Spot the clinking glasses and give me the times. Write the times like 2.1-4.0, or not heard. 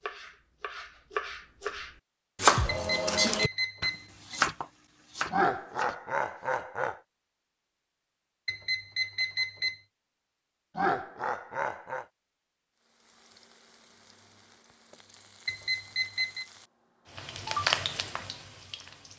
not heard.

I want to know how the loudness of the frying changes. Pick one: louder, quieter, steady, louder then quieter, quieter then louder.
louder.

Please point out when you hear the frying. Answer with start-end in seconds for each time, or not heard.
12.8-19.1.